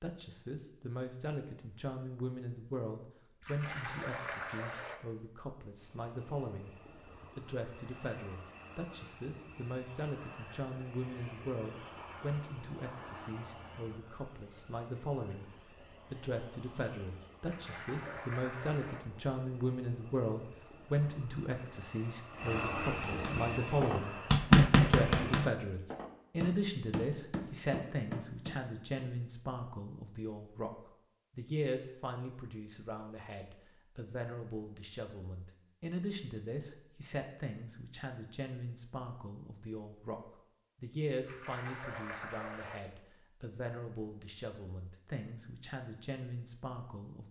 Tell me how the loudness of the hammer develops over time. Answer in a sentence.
The loudness of the hammer goes down.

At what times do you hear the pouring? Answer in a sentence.
You can hear the pouring from 3.4 to 5.0 s, from 17.4 to 19.0 s and from 41.2 to 42.8 s.